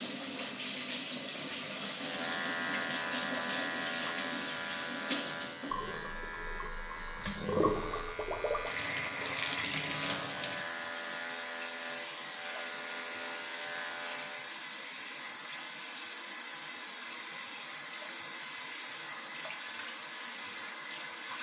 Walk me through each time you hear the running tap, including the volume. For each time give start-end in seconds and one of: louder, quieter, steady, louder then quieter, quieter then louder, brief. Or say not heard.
0.0-21.3 steady.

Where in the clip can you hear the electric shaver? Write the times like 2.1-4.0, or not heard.
1.9-14.6.